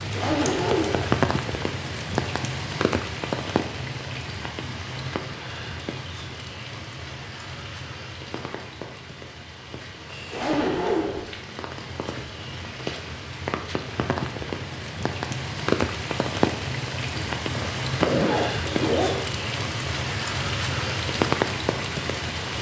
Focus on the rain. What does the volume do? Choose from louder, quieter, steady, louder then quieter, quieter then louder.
quieter then louder.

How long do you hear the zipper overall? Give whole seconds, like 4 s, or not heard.
4 s.